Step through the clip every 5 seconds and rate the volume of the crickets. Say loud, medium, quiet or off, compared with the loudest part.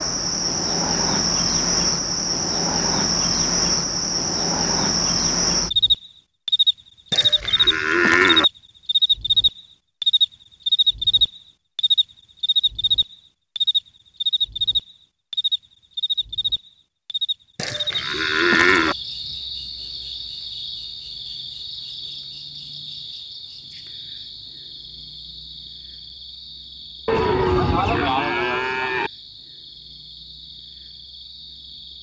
loud, loud, loud, medium, quiet, quiet, quiet.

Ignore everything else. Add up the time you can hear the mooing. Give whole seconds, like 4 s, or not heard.
5 s.